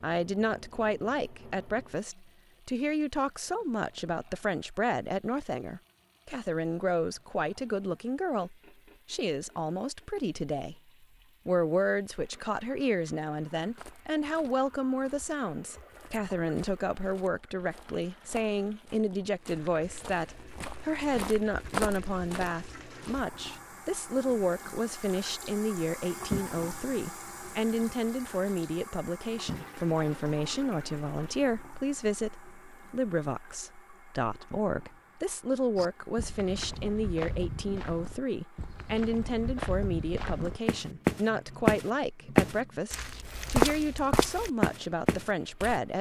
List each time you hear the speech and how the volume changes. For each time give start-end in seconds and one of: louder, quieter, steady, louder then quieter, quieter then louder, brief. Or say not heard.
0.0-45.9 steady.